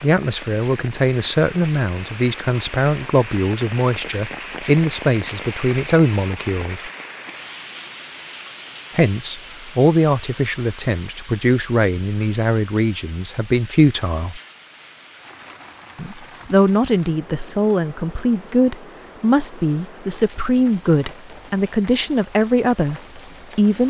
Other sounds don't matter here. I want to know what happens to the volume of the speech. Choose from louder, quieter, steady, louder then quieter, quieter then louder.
steady.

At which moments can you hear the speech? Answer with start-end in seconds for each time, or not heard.
0.0-6.9, 8.9-14.4, 15.9-23.8.